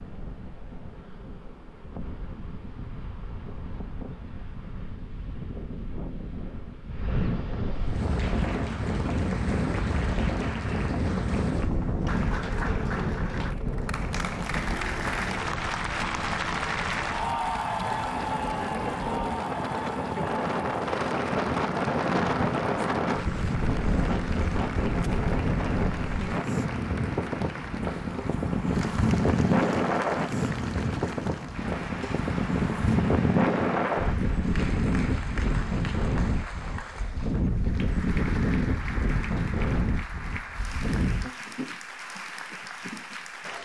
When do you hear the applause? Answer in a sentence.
The applause can be heard from 7.8 to 43.6 s.